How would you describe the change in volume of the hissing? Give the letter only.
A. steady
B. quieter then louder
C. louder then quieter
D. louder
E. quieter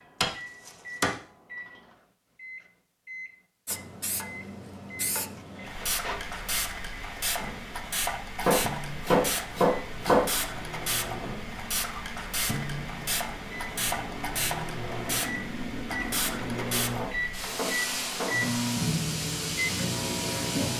A.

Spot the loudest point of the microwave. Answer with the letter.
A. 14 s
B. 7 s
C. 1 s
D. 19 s
D.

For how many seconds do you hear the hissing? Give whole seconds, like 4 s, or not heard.
17 s.